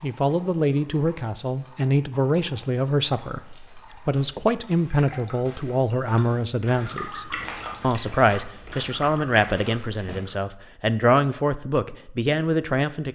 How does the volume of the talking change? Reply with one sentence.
The volume of the talking stays about the same.